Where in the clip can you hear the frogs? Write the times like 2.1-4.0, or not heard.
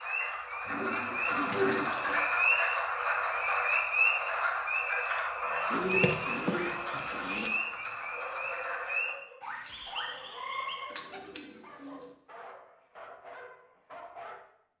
0.0-11.1.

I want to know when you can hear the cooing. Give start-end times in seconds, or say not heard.
0.7-2.2, 5.7-7.5, 10.9-12.1.